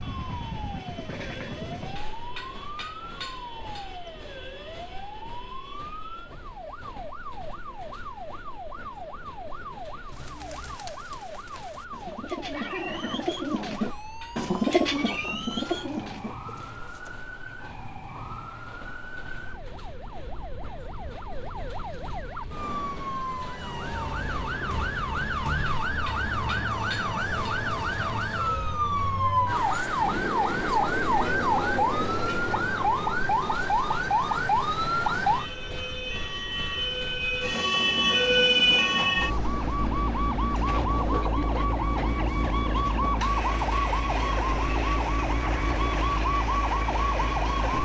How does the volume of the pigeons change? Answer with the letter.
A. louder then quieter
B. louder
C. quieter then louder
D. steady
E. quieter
A.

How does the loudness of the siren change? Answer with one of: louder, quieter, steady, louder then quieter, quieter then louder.
louder.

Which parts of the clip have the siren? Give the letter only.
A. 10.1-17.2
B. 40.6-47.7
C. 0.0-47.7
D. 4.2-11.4
C.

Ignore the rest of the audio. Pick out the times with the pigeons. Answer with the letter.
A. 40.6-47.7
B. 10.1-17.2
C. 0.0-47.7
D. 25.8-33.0
B.